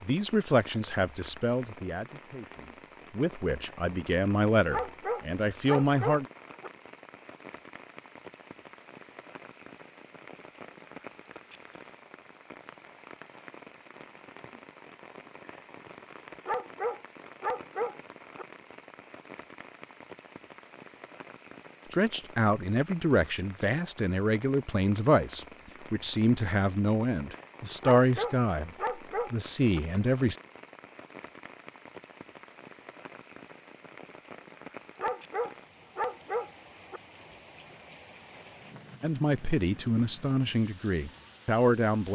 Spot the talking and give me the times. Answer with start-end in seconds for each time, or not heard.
0.0-6.2, 21.9-28.7, 29.3-30.4, 39.0-42.1.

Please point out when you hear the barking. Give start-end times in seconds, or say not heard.
4.7-6.7, 16.4-18.4, 27.8-29.8, 35.0-37.0.